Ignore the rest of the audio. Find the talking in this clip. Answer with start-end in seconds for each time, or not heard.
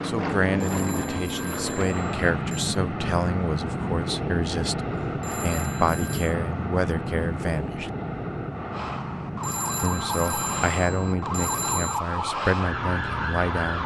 0.1-7.9, 9.8-13.8.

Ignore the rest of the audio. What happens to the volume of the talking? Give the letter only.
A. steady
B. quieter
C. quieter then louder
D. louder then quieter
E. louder
A.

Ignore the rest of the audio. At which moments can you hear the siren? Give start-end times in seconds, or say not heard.
8.7-13.8.